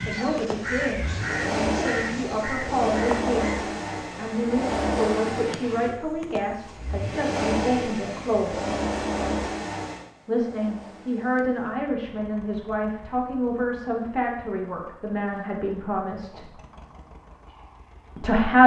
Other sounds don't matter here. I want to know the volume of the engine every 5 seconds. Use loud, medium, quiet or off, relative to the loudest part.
loud, loud, quiet, quiet.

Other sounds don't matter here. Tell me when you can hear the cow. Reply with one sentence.
The cow can't be heard in this clip.